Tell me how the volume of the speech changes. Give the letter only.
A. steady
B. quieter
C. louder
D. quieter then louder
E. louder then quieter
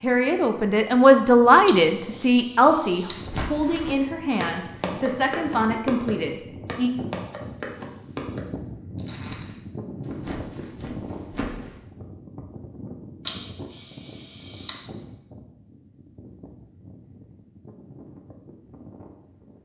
B.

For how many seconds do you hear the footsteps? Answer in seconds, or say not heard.
9 s.